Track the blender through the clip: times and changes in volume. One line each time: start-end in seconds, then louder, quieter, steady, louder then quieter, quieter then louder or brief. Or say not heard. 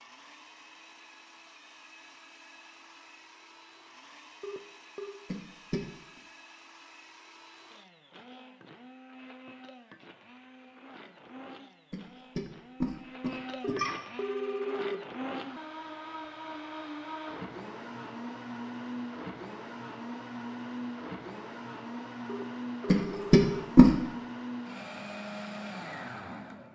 0.0-26.7 louder.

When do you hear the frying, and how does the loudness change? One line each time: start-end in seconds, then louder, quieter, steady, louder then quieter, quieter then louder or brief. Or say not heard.
not heard.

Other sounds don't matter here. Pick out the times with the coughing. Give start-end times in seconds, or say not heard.
5.2-5.8, 11.9-13.9, 22.9-23.9.